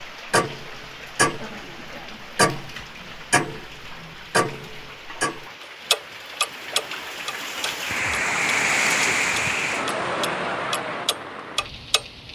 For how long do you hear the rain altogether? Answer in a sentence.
You can hear the rain for 12 seconds altogether.